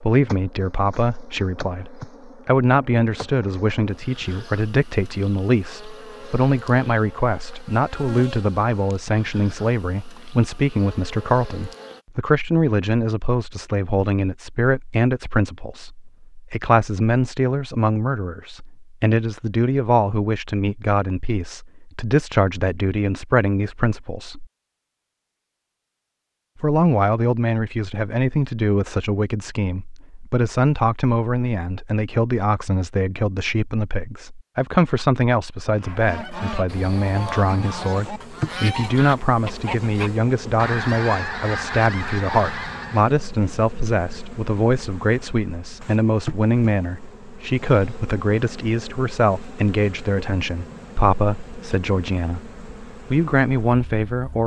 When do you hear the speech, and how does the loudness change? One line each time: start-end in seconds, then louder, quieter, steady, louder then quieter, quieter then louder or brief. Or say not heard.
0.0-24.4 steady
26.6-54.4 steady.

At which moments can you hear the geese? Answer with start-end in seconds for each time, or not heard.
35.8-43.1.